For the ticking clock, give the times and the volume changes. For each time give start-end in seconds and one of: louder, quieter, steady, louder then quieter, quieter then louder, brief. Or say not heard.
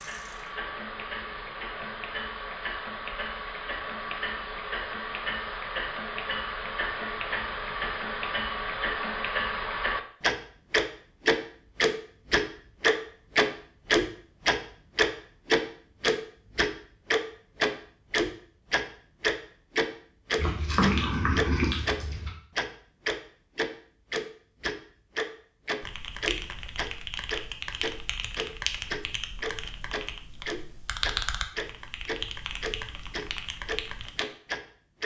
0.0-35.0 louder then quieter.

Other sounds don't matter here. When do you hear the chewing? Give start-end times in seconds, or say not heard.
20.4-22.3.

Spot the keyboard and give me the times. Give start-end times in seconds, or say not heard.
25.8-34.2.